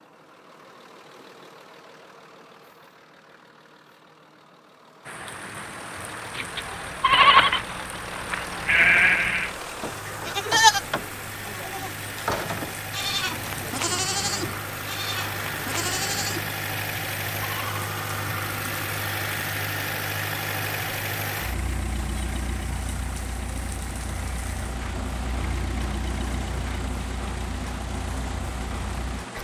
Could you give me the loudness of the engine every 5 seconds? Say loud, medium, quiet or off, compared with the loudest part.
quiet, medium, medium, loud, loud, medium.